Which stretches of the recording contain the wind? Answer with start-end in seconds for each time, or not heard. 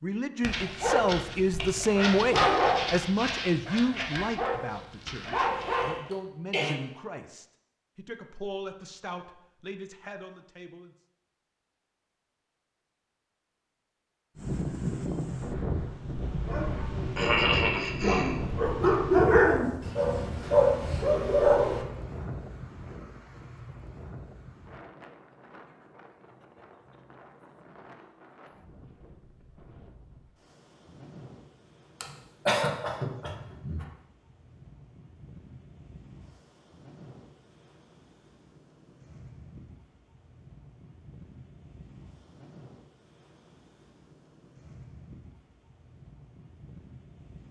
14.3-47.4.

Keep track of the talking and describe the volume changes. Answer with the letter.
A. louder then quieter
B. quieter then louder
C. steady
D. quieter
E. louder
D.